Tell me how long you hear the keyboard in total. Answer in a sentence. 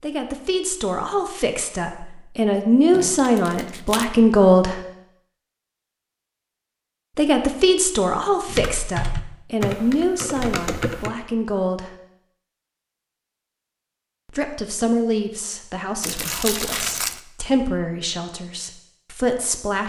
The keyboard can be heard for 3 seconds in total.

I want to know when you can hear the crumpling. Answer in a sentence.
The crumpling can be heard from 2.9 to 4.0 s and from 16.0 to 17.2 s.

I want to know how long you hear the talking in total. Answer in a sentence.
The talking can be heard for 15 seconds in total.